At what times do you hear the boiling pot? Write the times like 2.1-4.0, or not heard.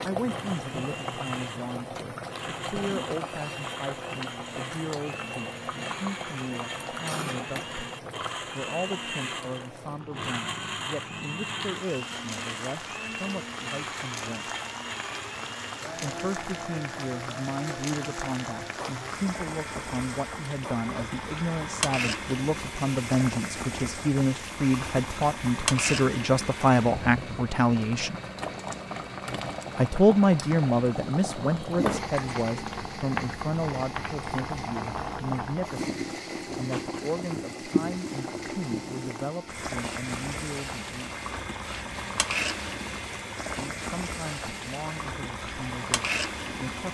0.0-46.9.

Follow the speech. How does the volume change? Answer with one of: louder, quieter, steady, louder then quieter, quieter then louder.
louder then quieter.